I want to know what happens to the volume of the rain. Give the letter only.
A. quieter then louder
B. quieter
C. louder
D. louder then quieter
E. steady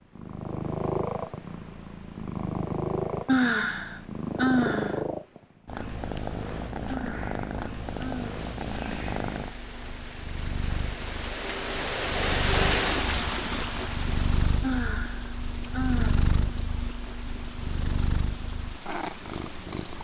D.